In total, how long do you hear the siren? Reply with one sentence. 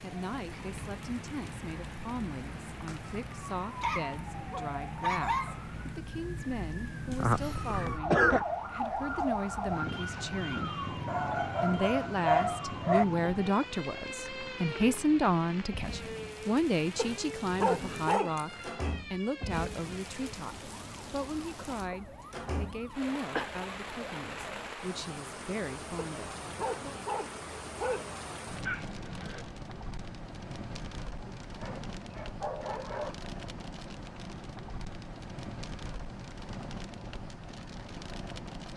The siren can be heard for 25 seconds in total.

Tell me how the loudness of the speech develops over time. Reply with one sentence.
The volume of the speech goes up, then down.